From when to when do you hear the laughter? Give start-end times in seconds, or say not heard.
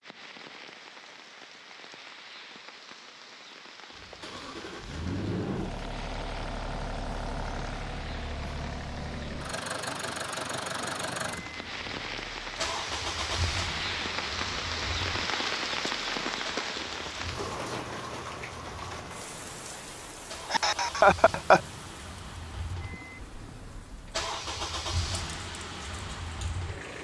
20.5-21.6.